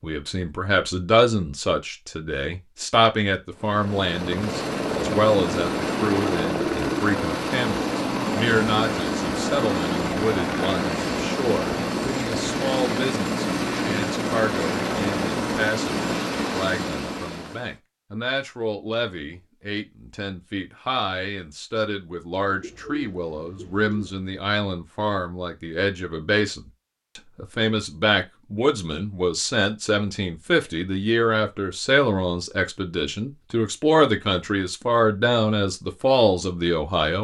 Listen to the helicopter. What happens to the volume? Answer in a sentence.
The loudness of the helicopter stays about the same.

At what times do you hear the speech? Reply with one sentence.
The speech can be heard from 0.0 to 37.1 s.